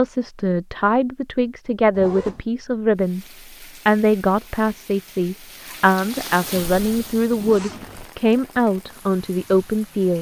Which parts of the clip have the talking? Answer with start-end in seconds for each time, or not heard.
0.0-3.2, 3.9-10.1.